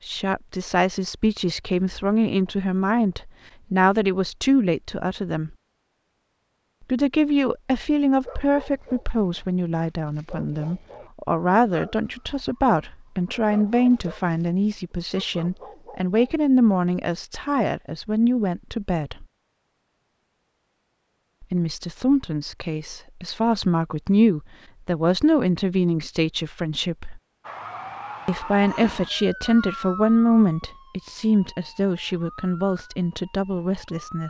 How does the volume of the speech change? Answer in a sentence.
The loudness of the speech stays about the same.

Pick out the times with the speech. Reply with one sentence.
You can hear the speech from 0.1 to 5.5 s, from 6.9 to 19.2 s, from 21.4 to 27.2 s and from 28.2 to 34.2 s.